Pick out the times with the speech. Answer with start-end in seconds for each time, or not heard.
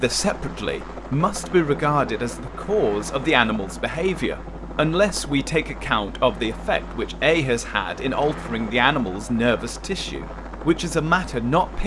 0.0-11.8.